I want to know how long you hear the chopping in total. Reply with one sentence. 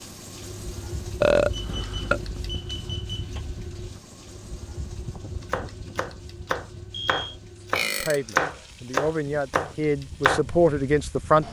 You can hear the chopping for 5 seconds altogether.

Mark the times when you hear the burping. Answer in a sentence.
The burping can be heard from 1.2 to 2.5 s and from 7.7 to 8.2 s.